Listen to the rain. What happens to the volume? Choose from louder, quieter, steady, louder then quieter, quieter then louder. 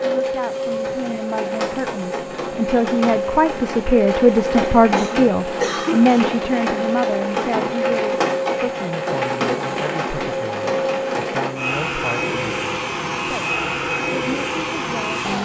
louder.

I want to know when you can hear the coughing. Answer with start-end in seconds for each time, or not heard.
4.9-6.2.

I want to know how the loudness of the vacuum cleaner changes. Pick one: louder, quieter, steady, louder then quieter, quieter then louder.
steady.